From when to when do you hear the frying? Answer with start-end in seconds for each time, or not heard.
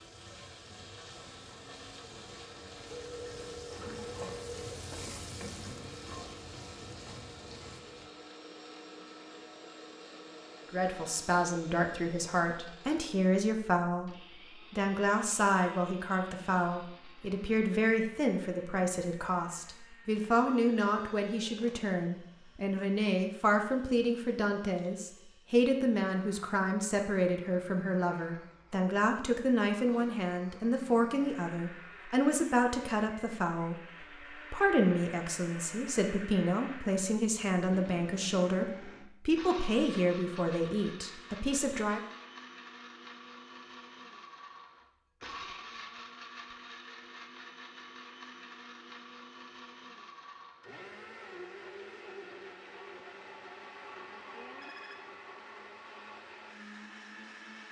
0.0-8.1.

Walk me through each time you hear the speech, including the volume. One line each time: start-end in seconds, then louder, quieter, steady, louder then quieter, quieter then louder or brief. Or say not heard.
10.7-42.0 steady.